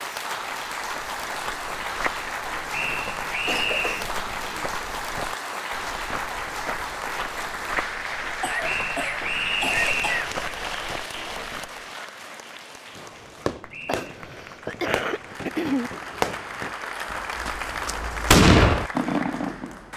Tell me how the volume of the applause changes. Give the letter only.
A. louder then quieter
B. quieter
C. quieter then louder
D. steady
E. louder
C.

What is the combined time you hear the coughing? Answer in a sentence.
The coughing can be heard for 5 seconds in total.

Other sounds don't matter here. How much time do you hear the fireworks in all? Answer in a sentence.
The fireworks can be heard for 7 seconds in total.